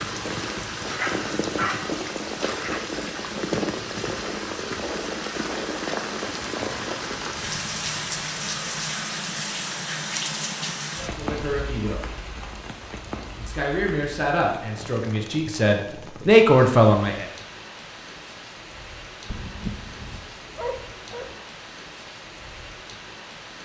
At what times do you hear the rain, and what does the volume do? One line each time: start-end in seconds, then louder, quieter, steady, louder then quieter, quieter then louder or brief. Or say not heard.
0.0-23.6 quieter.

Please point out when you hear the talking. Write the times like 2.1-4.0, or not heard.
10.9-12.1, 13.3-17.2.